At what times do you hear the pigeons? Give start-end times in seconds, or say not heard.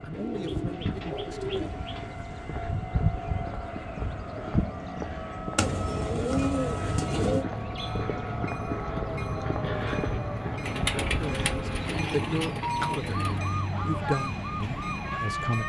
0.1-2.1, 5.5-7.5, 10.7-13.3.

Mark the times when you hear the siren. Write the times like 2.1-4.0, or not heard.
0.0-15.6.